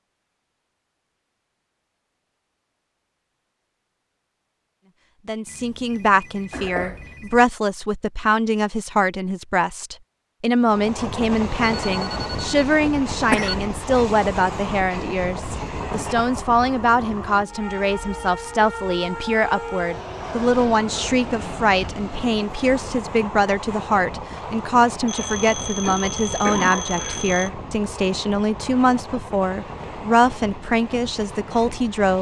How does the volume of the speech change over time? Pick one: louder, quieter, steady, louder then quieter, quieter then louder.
steady.